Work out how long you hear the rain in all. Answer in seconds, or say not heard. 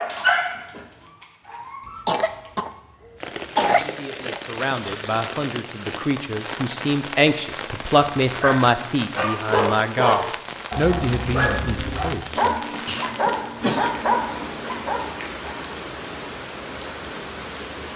15 s.